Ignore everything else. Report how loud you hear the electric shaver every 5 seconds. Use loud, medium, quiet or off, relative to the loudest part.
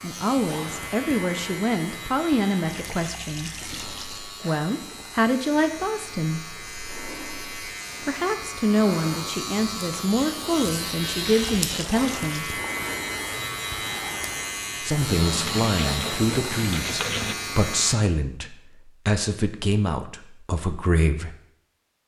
medium, medium, loud, loud, off.